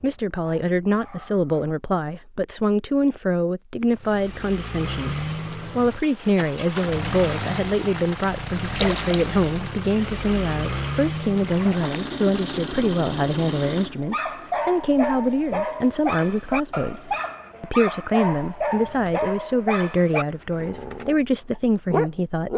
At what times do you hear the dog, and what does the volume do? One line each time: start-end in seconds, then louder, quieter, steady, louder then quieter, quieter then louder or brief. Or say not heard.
0.0-1.8 brief
13.9-22.5 steady.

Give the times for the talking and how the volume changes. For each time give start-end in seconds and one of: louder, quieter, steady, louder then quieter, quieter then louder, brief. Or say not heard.
0.0-22.5 steady.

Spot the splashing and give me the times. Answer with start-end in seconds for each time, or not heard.
8.8-9.2, 11.3-12.2.